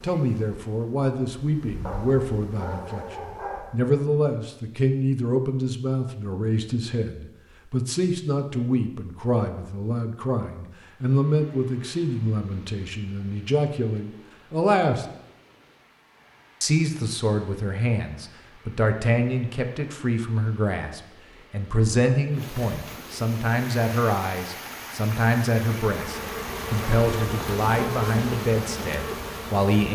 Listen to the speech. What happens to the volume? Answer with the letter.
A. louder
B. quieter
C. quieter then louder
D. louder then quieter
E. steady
E.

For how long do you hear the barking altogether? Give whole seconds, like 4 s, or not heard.
2 s.